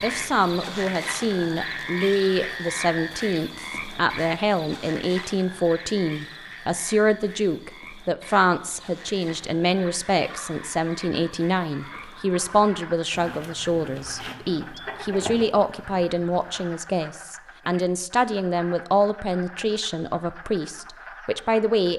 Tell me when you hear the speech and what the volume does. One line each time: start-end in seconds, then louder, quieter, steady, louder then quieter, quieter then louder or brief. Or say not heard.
0.0-21.9 steady.